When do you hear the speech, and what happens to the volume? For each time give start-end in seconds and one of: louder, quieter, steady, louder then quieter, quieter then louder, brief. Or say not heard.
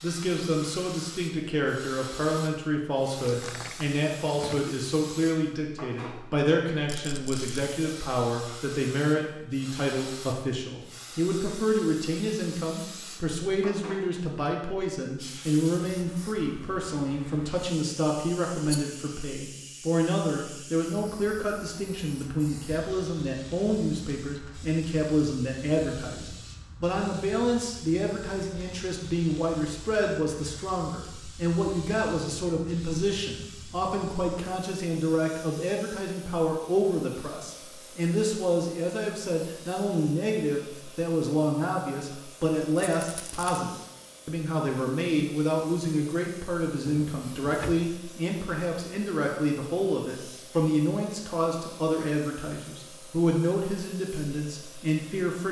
0.0-55.4 steady.